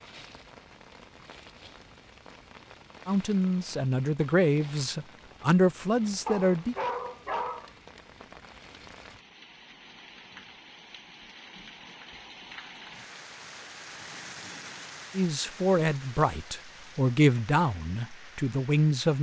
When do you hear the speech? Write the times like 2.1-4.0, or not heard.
3.0-6.8, 15.2-19.1.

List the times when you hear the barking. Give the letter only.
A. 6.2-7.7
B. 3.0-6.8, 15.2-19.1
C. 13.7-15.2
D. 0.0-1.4
A.